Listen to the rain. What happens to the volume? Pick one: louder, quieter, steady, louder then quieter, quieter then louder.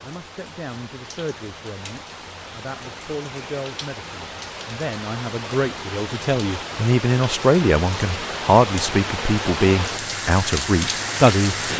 louder.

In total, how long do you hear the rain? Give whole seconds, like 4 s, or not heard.
12 s.